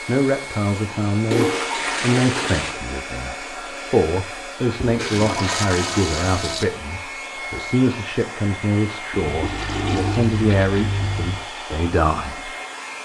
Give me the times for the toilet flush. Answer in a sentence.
You can hear the toilet flush from 1.3 to 2.8 s, from 4.8 to 6.7 s and from 9.1 to 11.4 s.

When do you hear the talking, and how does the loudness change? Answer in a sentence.
The talking can be heard from 0.1 to 12.5 s, at a steady volume.